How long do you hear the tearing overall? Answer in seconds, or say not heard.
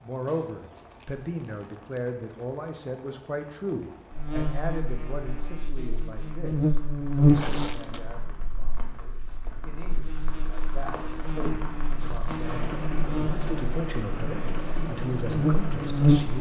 4 s.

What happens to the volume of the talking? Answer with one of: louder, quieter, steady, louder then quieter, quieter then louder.
quieter then louder.